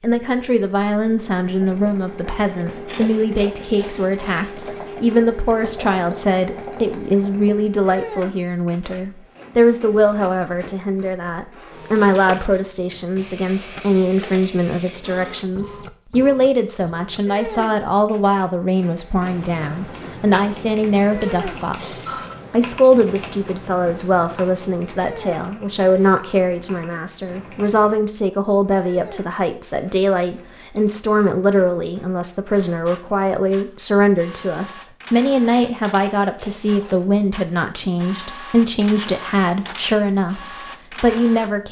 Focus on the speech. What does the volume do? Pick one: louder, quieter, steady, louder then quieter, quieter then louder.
steady.